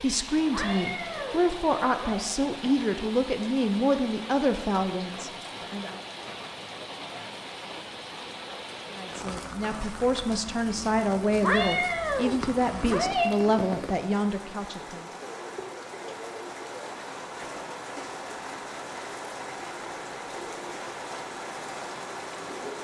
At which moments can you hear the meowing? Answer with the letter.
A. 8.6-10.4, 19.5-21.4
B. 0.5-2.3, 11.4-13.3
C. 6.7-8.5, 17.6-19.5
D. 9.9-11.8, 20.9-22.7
B.